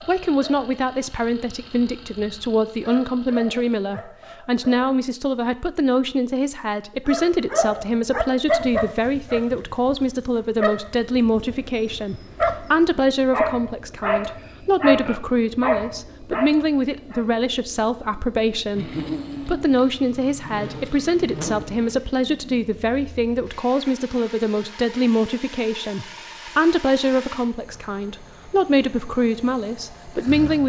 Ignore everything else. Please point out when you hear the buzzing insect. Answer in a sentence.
You can hear the buzzing insect from 18.7 to 21.9 s.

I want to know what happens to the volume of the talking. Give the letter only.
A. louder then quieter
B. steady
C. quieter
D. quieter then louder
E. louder
B.